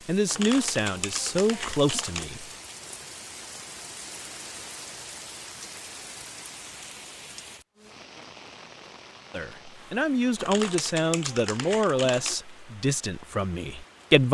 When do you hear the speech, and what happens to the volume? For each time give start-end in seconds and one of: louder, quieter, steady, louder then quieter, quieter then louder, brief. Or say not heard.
0.1-2.5 brief
9.3-14.2 quieter.